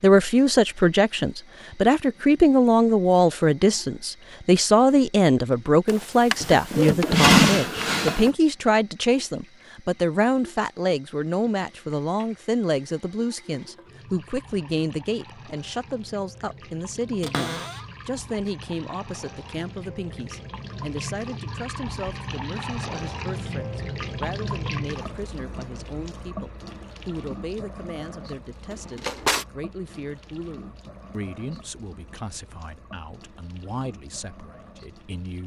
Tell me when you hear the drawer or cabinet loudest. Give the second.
7 s.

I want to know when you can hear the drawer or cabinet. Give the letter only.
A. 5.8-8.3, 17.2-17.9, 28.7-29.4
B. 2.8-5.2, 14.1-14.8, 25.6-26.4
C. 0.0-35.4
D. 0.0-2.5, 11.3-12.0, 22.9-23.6
A.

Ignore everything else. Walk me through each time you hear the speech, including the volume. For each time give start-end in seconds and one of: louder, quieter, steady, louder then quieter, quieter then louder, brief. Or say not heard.
0.0-35.4 quieter.